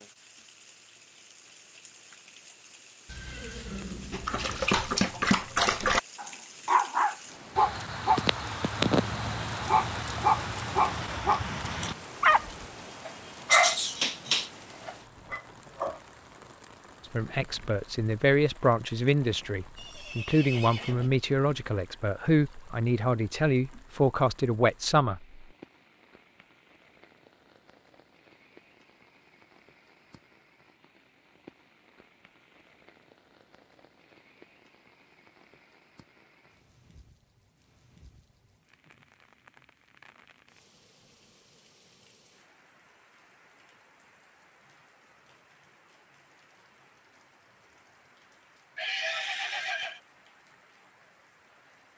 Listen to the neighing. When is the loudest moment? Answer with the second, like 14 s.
49 s.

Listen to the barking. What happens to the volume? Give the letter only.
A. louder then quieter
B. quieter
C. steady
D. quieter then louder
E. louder
C.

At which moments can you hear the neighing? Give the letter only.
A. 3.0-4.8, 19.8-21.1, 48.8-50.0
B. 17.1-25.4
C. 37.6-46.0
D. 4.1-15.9
A.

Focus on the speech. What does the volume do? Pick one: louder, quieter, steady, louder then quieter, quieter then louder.
steady.